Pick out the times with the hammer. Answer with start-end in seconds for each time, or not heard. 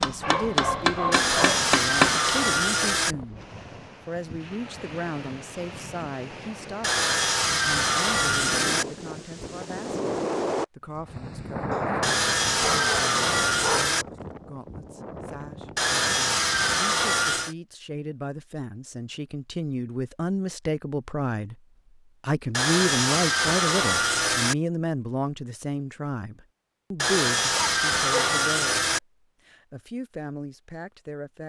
0.0-2.2.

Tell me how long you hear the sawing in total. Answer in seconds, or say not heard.
12 s.